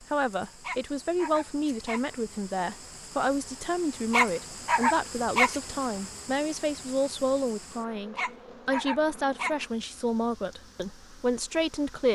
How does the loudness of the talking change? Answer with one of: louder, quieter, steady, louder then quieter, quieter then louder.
steady.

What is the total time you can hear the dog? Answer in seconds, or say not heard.
4 s.